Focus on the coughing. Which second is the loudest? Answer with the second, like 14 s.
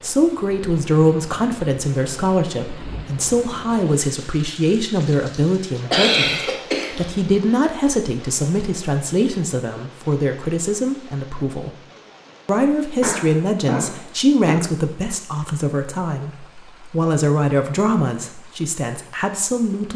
6 s.